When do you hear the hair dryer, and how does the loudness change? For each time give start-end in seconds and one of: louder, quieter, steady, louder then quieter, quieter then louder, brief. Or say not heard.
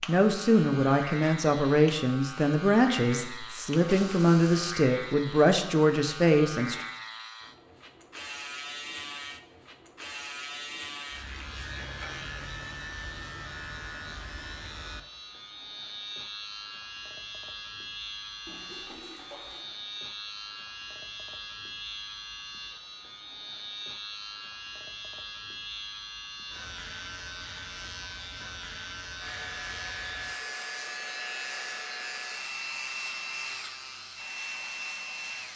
29.1-35.5 steady.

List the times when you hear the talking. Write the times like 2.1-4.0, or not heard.
0.1-6.8.